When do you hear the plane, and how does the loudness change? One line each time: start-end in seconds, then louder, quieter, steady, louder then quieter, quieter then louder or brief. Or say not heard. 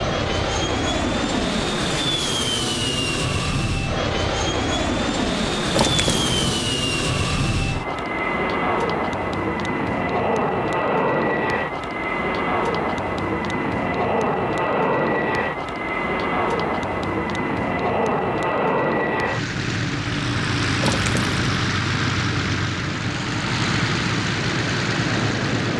0.0-25.7 steady.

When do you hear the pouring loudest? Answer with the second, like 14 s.
6 s.